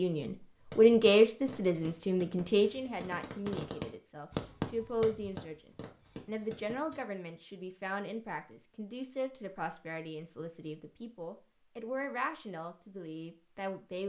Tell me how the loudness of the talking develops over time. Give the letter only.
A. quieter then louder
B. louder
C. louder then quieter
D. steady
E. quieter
E.